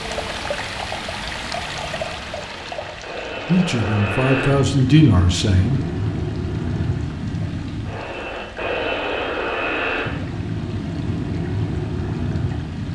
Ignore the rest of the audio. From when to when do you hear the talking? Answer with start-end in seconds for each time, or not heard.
3.5-5.8.